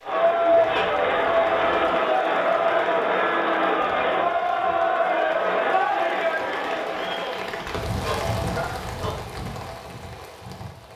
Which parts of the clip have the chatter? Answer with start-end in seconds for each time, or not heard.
0.0-7.4.